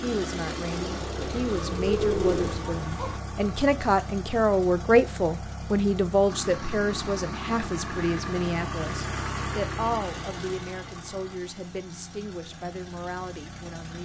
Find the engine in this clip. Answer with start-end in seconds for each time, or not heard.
0.0-14.0.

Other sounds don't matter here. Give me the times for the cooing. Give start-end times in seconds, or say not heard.
1.2-3.2.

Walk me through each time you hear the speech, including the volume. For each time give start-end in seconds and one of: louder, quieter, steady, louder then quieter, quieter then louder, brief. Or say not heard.
0.0-14.0 louder then quieter.